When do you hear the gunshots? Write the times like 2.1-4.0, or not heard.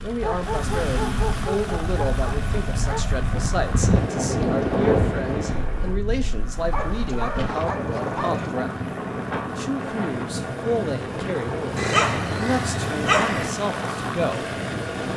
not heard.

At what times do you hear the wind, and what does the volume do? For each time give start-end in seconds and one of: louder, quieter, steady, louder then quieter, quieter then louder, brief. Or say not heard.
0.0-15.1 louder then quieter.